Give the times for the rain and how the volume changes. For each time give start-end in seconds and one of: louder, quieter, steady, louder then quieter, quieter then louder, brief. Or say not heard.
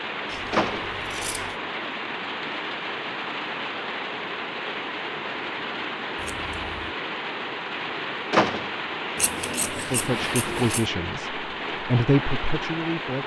0.0-13.2 steady.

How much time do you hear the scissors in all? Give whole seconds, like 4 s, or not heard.
4 s.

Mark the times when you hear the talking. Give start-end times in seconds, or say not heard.
9.7-13.2.